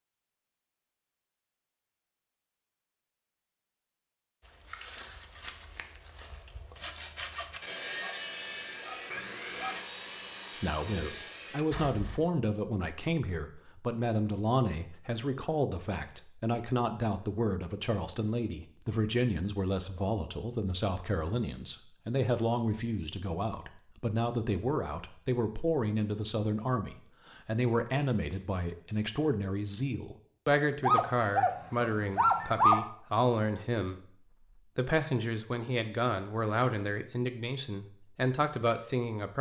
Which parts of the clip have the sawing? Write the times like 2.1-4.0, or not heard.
4.4-12.2.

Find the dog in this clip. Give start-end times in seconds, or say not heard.
7.3-9.8, 30.8-32.8.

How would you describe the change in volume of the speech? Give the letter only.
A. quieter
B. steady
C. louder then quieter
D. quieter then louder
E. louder
B.